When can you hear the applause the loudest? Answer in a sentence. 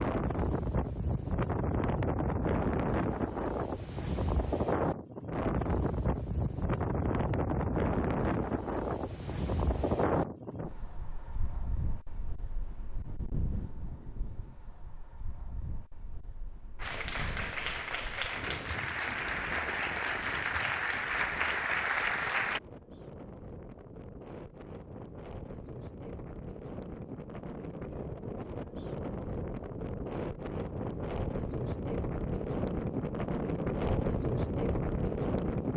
The volume of the applause peaks at 22 seconds.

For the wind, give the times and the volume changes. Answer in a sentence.
The wind can be heard from 0.0 to 35.7 s, getting quieter then louder.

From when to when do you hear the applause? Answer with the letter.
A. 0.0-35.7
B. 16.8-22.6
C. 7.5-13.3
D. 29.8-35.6
B.